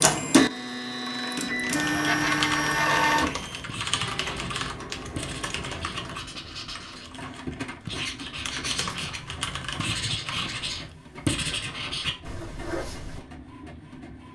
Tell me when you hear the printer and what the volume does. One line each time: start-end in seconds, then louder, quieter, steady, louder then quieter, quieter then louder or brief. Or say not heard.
0.0-14.2 quieter.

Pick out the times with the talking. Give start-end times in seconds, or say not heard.
not heard.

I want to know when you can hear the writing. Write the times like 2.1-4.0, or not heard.
3.6-7.2, 7.8-13.2.